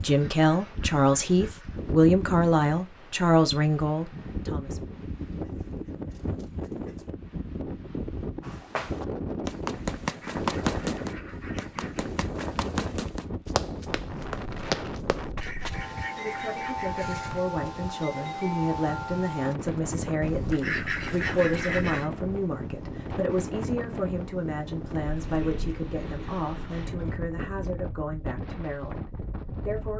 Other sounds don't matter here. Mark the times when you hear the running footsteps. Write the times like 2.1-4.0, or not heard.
8.4-15.8.